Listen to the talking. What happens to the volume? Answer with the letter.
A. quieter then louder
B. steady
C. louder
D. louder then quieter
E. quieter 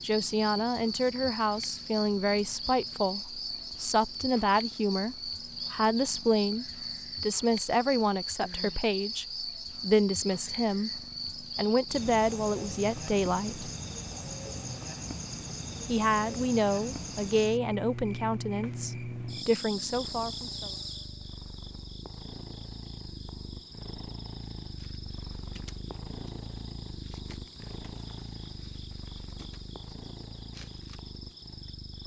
B.